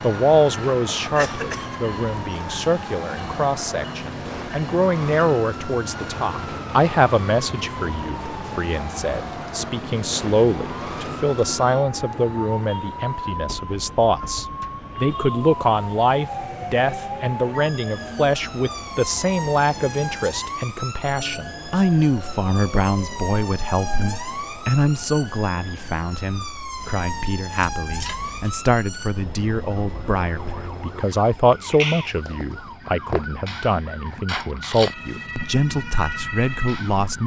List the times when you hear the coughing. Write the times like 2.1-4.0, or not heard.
1.1-1.8, 27.6-28.6.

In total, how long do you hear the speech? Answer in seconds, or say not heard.
37 s.